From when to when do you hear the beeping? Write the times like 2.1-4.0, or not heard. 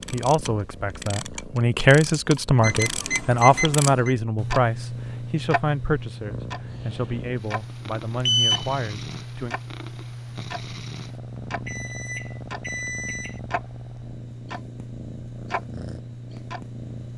2.6-4.2, 8.2-8.7, 11.7-13.4.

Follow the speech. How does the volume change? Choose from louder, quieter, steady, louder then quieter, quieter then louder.
quieter.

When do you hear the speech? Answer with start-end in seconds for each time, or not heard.
0.1-9.6.